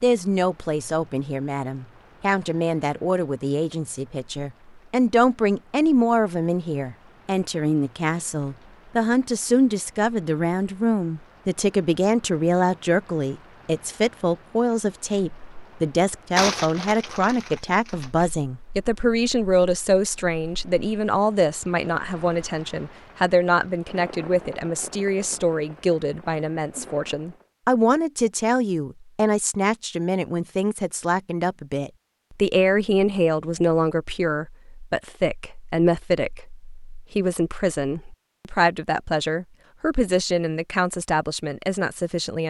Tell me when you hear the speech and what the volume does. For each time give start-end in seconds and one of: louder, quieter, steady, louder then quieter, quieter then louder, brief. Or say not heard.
0.0-42.4 steady.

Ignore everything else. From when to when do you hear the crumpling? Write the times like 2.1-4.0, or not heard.
16.4-18.2.